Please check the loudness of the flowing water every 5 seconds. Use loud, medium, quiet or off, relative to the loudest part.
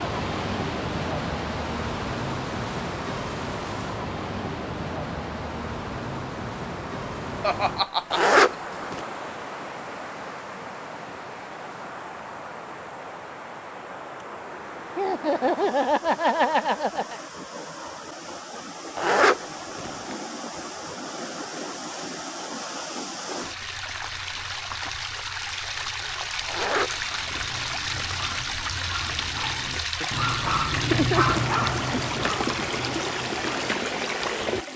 loud, medium, medium, medium, medium, loud, loud.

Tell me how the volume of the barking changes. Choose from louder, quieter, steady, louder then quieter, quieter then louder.
louder then quieter.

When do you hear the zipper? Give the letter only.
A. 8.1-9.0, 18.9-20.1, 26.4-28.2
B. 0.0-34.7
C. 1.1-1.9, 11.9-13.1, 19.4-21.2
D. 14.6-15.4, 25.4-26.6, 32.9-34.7
A.